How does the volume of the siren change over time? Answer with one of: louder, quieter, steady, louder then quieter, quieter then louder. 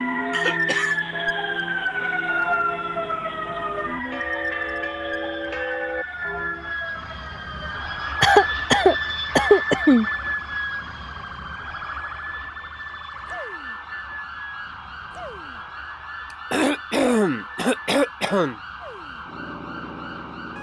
quieter.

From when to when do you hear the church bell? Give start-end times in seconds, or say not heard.
0.0-6.8.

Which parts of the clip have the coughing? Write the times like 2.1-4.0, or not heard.
0.3-0.9, 8.2-10.1, 16.5-18.6.